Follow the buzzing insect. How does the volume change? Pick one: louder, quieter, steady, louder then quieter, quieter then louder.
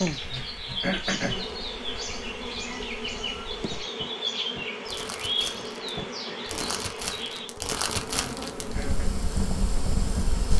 steady.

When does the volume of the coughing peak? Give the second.
1 s.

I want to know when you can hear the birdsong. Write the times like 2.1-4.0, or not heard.
0.0-7.5.